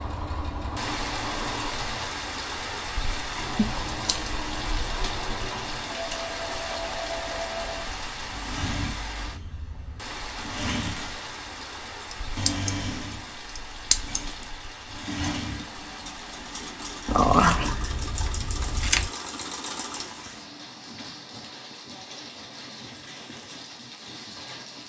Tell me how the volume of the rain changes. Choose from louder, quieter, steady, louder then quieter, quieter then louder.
quieter.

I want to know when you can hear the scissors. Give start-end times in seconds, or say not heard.
3.5-4.3, 12.1-12.8, 13.6-14.2, 17.1-19.1.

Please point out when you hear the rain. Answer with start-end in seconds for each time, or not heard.
0.1-24.8.